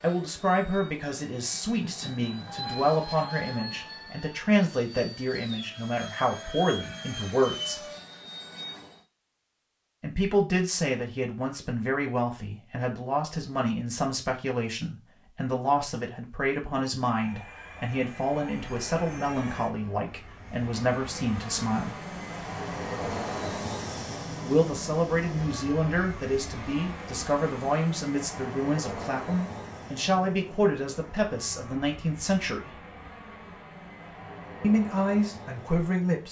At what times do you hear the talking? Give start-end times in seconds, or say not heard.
0.0-7.8, 10.0-21.9, 24.4-32.8, 34.6-36.2.